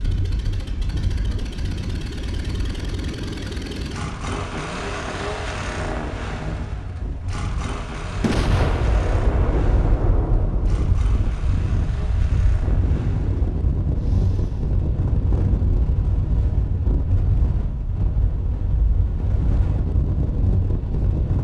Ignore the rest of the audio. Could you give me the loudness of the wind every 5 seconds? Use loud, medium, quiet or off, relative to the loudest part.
medium, medium, loud, loud, loud.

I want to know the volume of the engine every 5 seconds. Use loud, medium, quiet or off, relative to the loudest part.
loud, loud, medium, off, off.